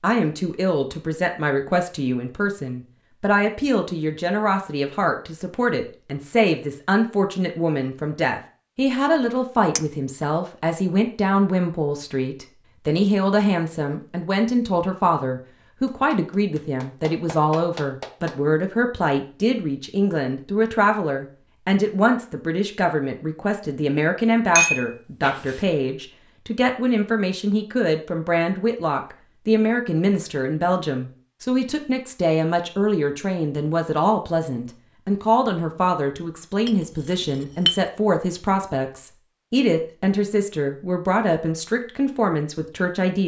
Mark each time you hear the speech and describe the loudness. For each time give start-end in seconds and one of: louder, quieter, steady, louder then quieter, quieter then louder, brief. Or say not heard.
0.0-43.2 steady.